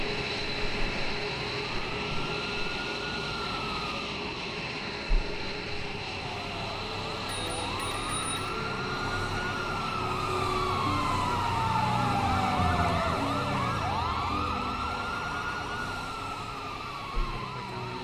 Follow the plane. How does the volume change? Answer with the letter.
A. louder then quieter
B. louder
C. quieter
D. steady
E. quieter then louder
C.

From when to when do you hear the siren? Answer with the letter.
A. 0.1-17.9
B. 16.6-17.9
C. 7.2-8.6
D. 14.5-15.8
A.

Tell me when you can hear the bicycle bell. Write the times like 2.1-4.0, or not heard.
7.2-8.6.